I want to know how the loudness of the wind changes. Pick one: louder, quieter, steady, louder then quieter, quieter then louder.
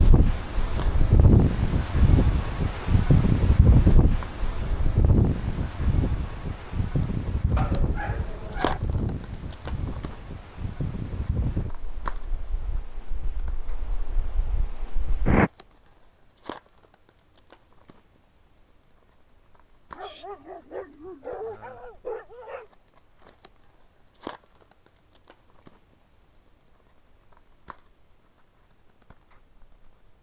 quieter.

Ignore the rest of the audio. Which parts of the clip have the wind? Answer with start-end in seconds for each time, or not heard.
0.0-15.5.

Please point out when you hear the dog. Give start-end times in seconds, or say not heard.
7.5-8.8, 19.9-22.6.